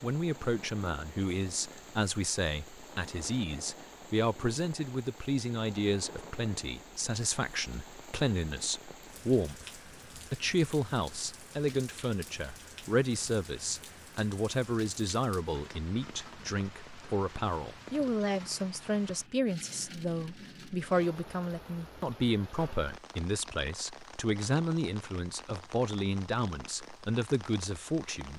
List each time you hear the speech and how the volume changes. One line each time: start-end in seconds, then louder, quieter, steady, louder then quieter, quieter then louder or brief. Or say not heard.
0.0-28.3 steady.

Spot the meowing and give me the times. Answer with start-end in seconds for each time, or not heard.
not heard.